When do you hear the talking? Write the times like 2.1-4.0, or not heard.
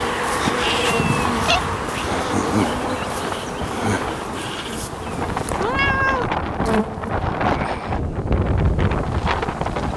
not heard.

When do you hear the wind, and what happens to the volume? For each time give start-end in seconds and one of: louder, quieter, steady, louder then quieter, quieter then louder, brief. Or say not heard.
0.1-9.9 louder.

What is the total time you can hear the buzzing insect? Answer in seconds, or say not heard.
10 s.